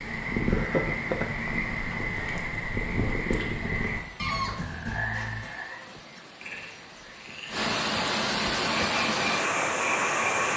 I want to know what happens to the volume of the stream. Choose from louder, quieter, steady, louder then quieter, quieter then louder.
louder.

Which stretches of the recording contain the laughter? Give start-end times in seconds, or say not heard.
0.5-1.4.